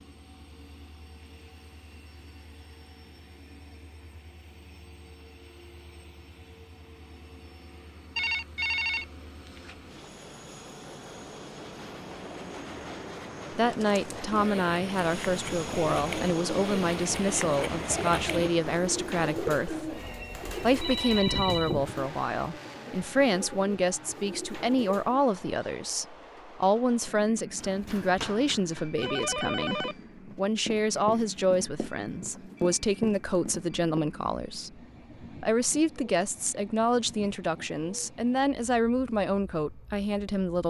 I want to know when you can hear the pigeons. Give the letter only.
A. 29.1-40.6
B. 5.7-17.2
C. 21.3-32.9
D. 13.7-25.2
D.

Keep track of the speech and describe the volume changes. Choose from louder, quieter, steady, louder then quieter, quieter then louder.
steady.